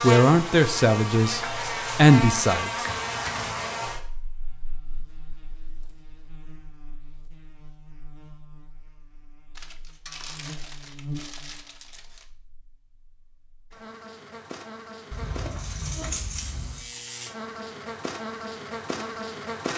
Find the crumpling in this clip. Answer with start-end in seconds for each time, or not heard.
9.6-12.3.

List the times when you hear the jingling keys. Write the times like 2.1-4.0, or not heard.
2.9-3.7, 15.1-16.9.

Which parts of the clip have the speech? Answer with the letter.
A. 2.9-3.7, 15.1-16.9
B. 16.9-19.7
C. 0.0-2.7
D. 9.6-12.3
C.